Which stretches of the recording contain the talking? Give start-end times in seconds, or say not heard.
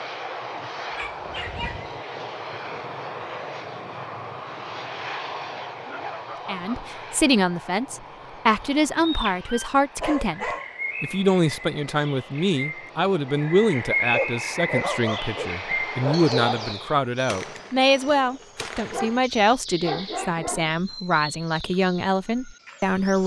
6.5-23.2.